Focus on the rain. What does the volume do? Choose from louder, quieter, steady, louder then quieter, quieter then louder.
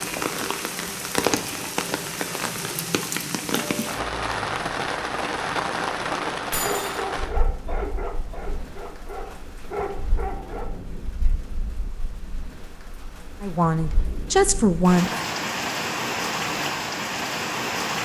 quieter then louder.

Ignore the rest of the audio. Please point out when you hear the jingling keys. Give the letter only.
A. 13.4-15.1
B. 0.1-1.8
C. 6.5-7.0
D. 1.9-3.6
C.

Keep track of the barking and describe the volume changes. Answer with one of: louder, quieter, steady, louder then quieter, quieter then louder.
quieter then louder.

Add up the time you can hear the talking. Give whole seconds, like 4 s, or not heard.
2 s.